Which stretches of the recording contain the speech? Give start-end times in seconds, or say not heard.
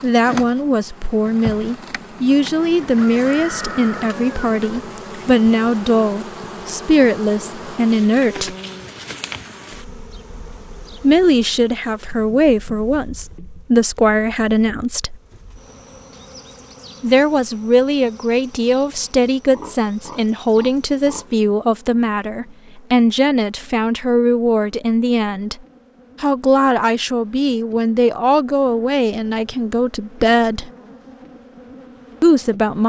0.0-8.6, 11.0-15.2, 17.0-25.6, 26.2-30.7, 32.2-32.8.